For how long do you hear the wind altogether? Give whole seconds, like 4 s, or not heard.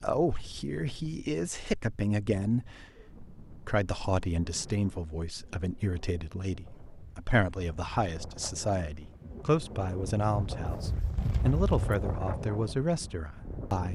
14 s.